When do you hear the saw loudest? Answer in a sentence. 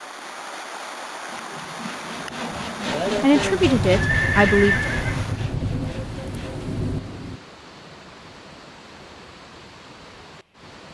The loudest moment of the saw is at 3 seconds.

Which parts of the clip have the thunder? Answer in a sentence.
You can hear the thunder from 3.4 to 7.4 s.